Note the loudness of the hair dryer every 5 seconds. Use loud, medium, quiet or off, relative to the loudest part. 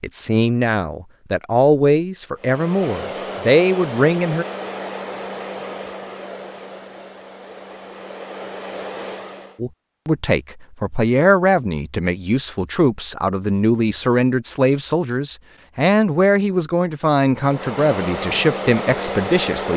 loud, medium, off, loud.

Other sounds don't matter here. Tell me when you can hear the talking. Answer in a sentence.
You can hear the talking from 0.0 to 4.5 s and from 9.6 to 19.7 s.